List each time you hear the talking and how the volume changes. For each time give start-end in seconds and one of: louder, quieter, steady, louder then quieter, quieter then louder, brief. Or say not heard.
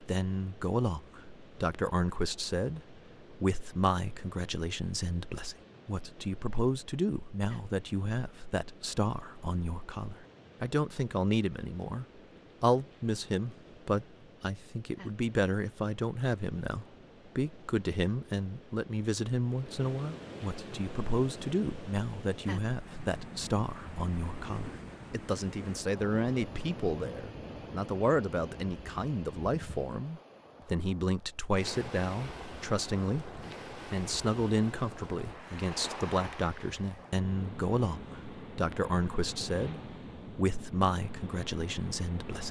0.0-42.4 steady.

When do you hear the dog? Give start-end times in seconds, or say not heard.
not heard.